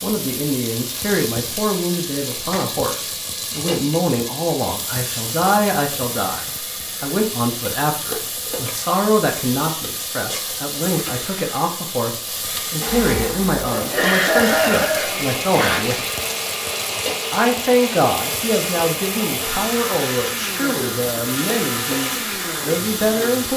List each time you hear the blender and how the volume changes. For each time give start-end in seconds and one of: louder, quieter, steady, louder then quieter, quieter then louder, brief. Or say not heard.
12.8-23.5 steady.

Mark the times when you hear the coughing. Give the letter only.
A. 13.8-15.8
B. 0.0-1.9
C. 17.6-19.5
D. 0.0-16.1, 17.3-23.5
A.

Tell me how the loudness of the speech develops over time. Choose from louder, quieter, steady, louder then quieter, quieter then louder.
steady.